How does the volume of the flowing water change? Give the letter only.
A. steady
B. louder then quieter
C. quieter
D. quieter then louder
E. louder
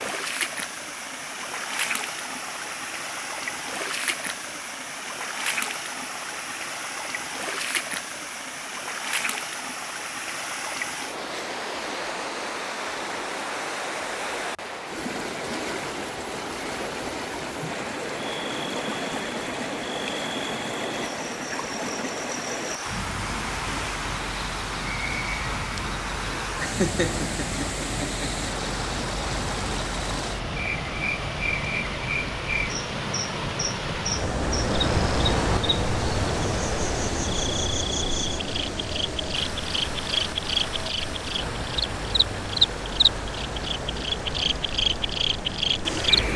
A.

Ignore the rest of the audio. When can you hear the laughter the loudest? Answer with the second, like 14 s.
27 s.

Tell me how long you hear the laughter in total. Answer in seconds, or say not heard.
2 s.